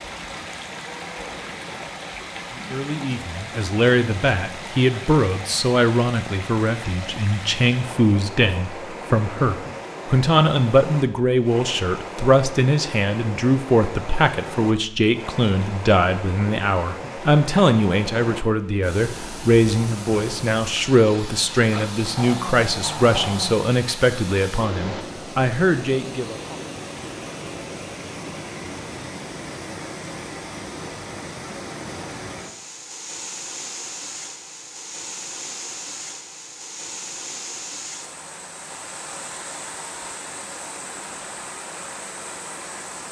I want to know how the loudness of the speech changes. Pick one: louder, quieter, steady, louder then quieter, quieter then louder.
steady.